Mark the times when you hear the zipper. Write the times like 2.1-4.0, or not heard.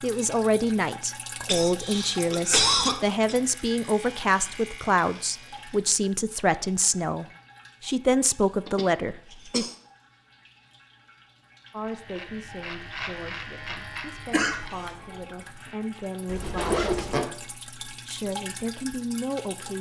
16.2-17.3.